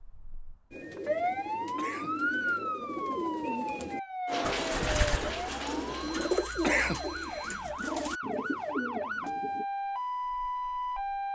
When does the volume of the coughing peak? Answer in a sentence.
The loudest moment of the coughing is at 7 seconds.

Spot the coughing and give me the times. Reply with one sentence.
You can hear the coughing from 1.8 to 2.6 s and from 6.6 to 7.6 s.